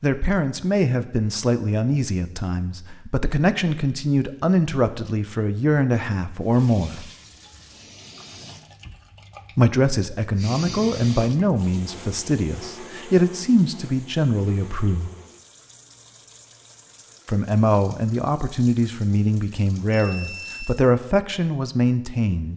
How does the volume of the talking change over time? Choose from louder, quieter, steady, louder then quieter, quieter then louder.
steady.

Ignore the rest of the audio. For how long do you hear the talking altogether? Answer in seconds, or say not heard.
18 s.